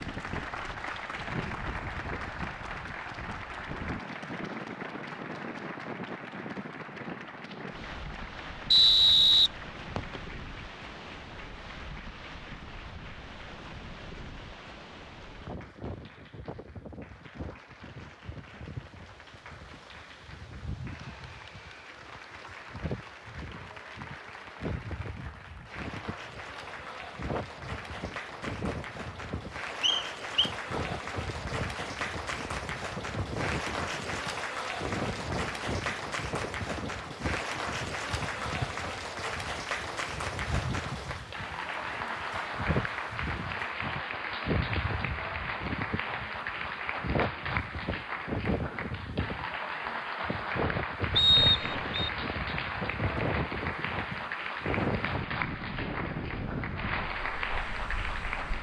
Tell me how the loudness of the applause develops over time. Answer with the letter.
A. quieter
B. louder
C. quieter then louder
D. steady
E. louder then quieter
C.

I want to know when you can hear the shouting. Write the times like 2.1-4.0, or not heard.
not heard.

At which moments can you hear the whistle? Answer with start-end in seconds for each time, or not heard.
8.7-10.2, 29.8-30.5, 51.1-52.1.